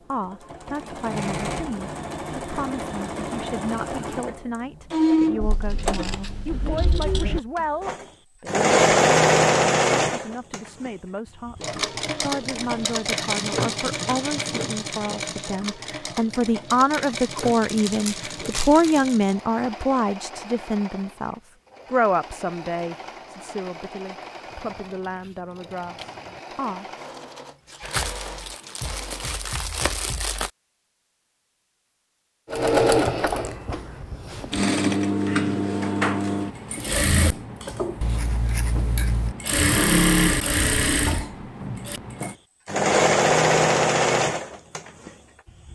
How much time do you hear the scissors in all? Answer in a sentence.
You can hear the scissors for 5 seconds altogether.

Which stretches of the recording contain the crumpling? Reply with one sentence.
You can hear the crumpling from 17.6 to 19.1 s and from 27.8 to 30.5 s.